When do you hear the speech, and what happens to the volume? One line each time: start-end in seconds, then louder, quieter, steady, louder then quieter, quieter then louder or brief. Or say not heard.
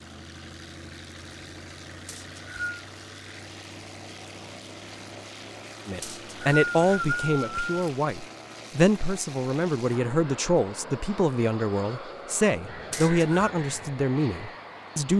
5.8-15.1 steady.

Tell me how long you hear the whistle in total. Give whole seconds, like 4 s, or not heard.
3 s.